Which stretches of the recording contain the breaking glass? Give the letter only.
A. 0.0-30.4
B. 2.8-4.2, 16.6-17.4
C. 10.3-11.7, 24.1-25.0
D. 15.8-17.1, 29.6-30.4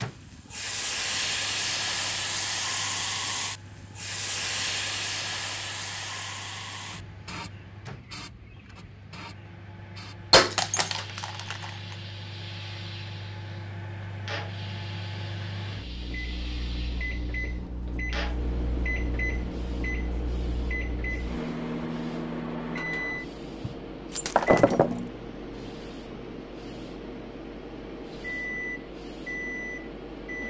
C.